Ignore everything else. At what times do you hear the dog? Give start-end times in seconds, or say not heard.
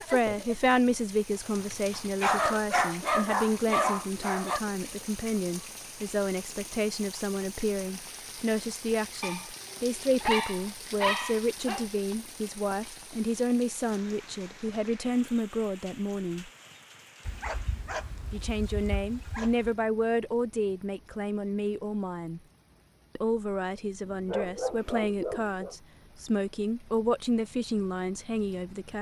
1.9-4.6, 9.2-11.8, 17.2-19.7, 24.1-25.8.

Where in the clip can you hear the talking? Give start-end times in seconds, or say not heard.
0.1-16.5, 18.3-22.4, 23.1-28.9.